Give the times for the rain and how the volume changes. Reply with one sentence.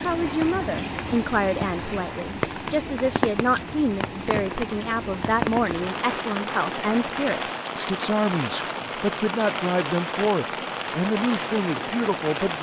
You can hear the rain from 0.0 to 12.5 s, at a steady volume.